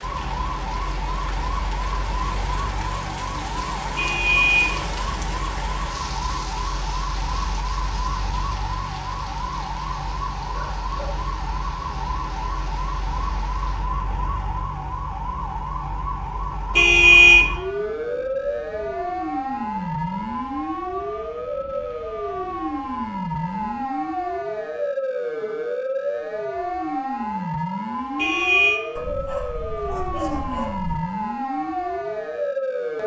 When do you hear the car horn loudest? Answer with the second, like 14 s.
17 s.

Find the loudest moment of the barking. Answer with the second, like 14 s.
30 s.